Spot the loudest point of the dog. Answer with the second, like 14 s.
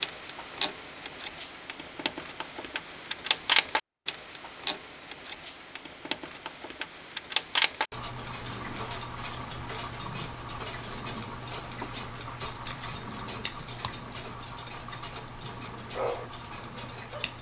16 s.